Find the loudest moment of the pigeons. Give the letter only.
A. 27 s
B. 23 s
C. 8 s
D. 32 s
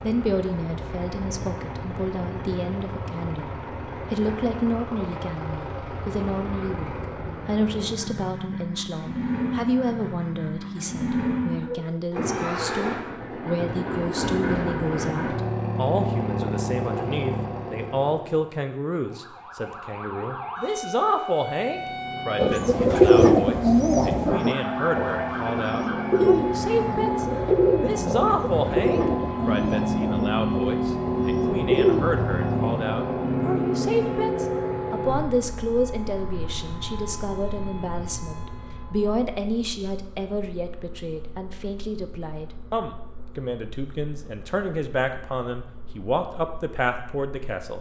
B.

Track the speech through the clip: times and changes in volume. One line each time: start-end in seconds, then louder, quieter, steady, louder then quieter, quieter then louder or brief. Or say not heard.
0.0-47.7 steady.